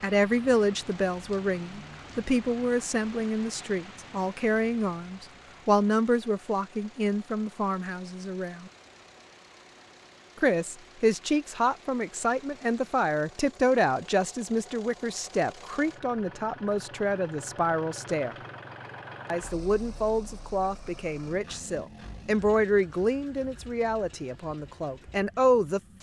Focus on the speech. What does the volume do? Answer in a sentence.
The volume of the speech stays about the same.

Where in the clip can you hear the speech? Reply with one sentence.
The speech can be heard from 0.0 to 8.7 s, from 10.3 to 18.4 s and from 19.3 to 25.8 s.